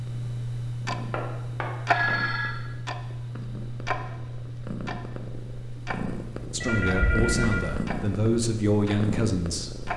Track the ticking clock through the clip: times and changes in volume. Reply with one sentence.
You can hear the ticking clock from 0.0 to 9.9 s, getting quieter.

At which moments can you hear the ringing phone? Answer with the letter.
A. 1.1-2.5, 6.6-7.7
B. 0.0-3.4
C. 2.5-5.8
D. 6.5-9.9
A.